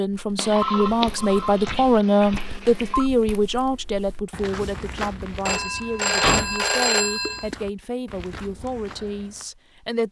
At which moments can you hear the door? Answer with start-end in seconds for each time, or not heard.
1.5-2.5, 6.2-6.7.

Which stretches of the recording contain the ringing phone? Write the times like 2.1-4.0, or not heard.
0.3-3.0, 5.5-7.5.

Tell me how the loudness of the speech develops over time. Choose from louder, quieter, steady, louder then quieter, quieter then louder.
quieter.